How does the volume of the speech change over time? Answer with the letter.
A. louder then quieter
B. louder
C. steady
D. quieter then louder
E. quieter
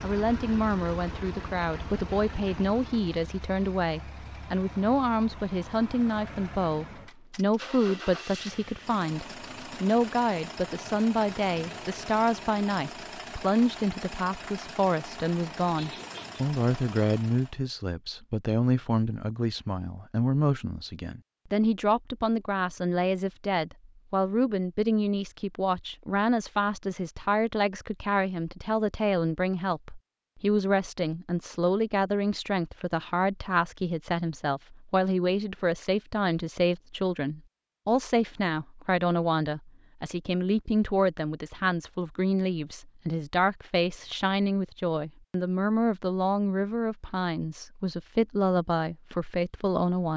C.